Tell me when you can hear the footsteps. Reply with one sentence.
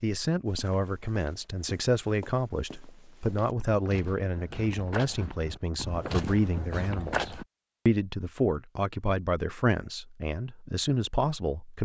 The footsteps can be heard from 0.5 to 7.5 s.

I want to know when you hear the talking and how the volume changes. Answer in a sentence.
You can hear the talking from 0.0 to 11.7 s, at a steady volume.